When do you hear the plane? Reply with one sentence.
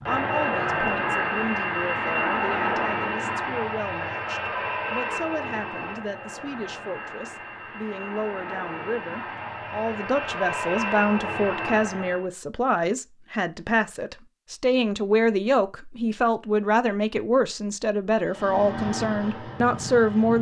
You can hear the plane from 0.0 to 12.2 s and from 18.2 to 20.3 s.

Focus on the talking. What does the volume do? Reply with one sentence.
The volume of the talking goes up.